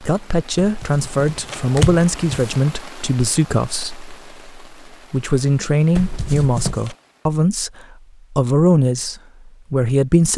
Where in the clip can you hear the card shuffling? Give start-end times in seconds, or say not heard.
0.6-2.5, 6.0-7.0.